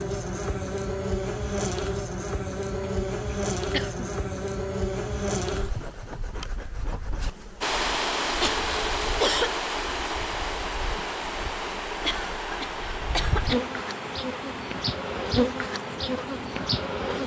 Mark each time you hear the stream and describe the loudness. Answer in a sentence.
The stream can be heard from 7.6 to 17.2 s, getting quieter.